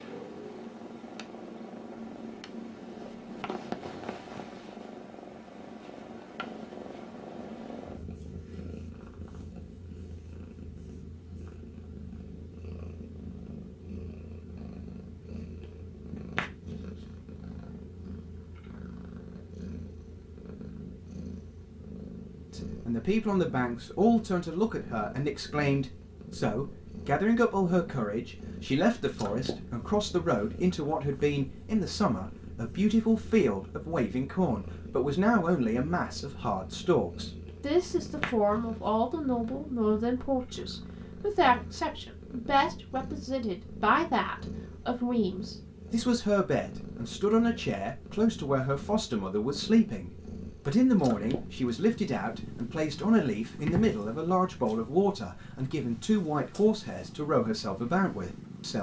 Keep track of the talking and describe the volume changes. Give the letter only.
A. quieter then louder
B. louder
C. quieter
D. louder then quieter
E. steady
E.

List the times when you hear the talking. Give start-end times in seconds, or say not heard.
22.5-58.7.